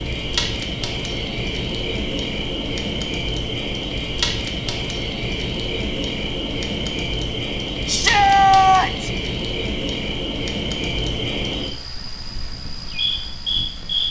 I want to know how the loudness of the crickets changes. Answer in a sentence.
The loudness of the crickets stays about the same.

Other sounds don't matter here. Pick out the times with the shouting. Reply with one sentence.
You can hear the shouting from 7.8 to 9.1 s.